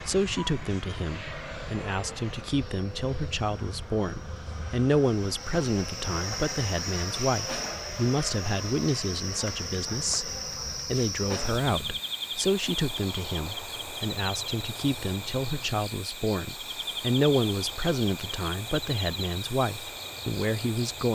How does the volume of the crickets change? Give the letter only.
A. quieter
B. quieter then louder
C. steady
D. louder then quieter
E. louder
C.